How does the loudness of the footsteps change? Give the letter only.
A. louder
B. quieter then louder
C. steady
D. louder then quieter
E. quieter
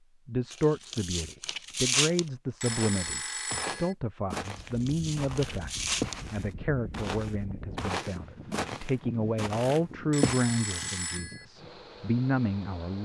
B.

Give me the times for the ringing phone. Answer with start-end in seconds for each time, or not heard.
2.6-4.0, 10.1-11.4.